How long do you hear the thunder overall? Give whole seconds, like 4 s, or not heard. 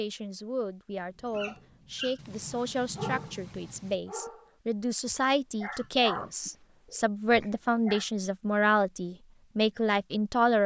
2 s.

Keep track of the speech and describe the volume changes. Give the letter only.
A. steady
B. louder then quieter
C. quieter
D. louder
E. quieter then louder
D.